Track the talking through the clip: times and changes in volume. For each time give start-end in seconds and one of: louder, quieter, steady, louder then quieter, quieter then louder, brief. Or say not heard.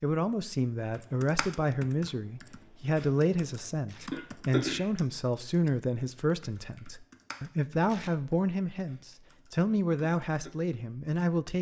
0.0-11.5 steady.